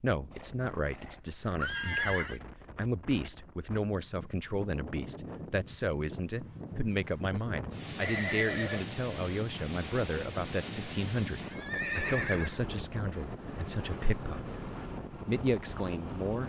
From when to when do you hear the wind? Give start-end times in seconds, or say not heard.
0.1-16.4.